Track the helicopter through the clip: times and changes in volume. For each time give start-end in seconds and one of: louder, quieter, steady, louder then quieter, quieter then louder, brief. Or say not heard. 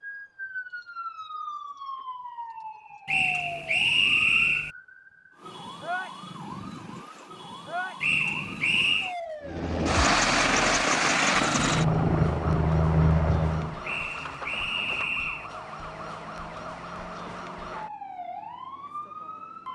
9.4-13.8 steady.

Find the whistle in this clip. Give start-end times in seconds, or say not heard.
3.0-4.7, 8.0-9.2, 13.8-15.5.